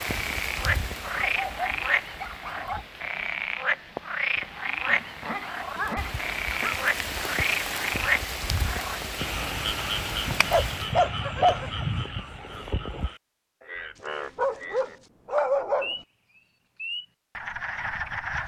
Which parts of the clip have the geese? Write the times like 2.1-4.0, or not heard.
not heard.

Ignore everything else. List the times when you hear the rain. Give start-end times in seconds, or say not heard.
0.0-10.9.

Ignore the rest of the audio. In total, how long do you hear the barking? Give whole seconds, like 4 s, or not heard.
7 s.